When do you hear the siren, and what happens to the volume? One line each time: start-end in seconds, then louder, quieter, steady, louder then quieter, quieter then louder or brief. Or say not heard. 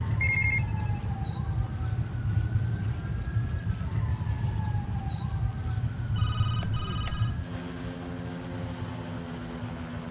0.0-10.0 quieter.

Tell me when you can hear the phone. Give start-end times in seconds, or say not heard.
0.2-0.8, 6.2-7.3.